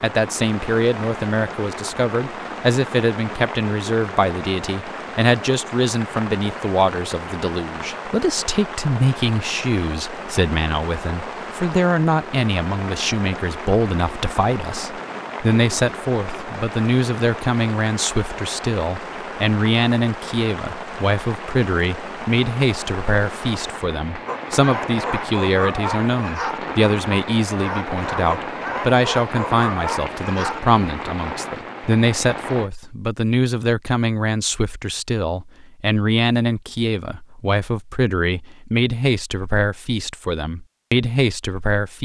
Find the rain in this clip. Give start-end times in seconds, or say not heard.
0.0-32.7.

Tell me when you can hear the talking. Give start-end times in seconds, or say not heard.
0.0-41.9.